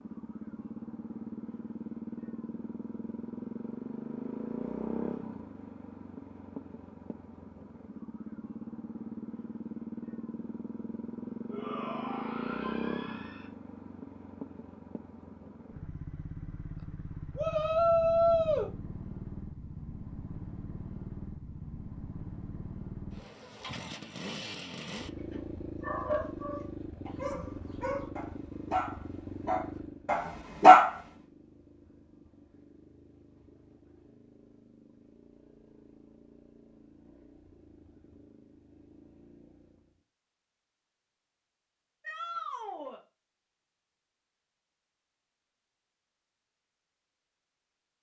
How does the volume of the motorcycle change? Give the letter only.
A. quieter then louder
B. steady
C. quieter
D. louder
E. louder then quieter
C.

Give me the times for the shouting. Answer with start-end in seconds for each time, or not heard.
11.5-13.5, 17.4-18.7, 42.0-43.0.